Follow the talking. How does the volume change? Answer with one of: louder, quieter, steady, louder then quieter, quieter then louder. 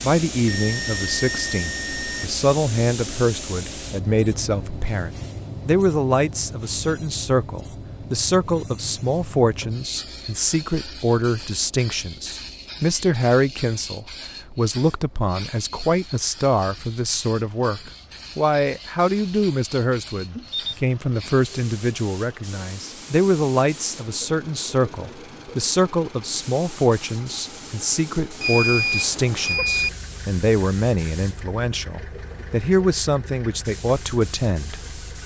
steady.